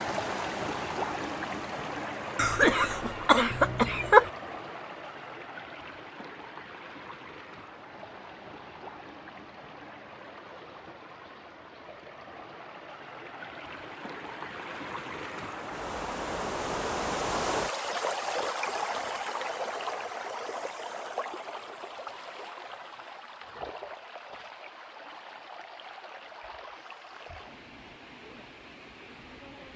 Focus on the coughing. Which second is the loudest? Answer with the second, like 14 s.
4 s.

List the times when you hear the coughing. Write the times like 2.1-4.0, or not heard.
2.4-4.3.